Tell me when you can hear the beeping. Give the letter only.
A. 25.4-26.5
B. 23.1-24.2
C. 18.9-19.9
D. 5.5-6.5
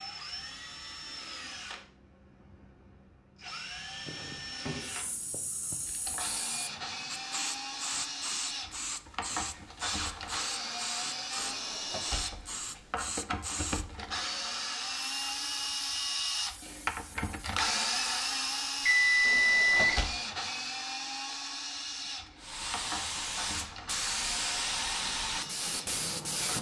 C.